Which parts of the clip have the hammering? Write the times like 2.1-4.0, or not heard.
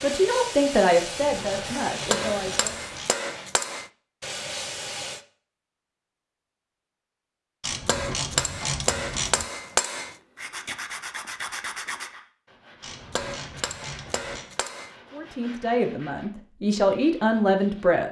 2.0-3.9, 7.8-10.2, 13.1-14.9.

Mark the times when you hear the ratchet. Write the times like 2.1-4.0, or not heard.
0.9-3.1, 7.6-9.5, 12.8-14.4.